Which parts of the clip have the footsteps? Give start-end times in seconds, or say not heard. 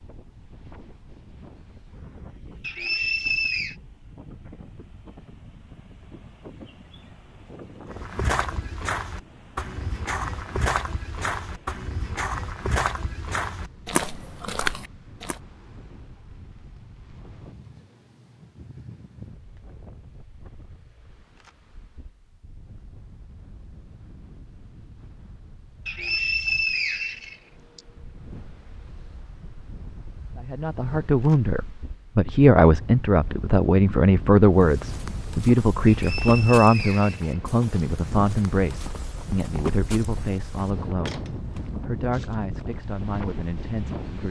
7.8-15.4, 34.5-41.6.